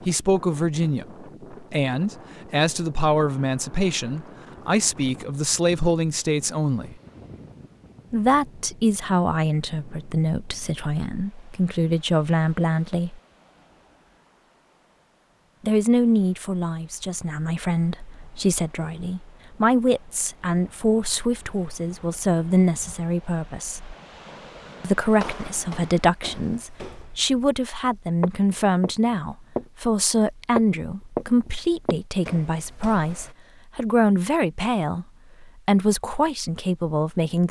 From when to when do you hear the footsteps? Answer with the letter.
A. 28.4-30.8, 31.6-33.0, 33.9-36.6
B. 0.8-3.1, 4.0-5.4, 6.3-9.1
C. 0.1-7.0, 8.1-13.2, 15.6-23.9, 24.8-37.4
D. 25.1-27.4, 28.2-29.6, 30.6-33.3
D.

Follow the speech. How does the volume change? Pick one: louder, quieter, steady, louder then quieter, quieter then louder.
steady.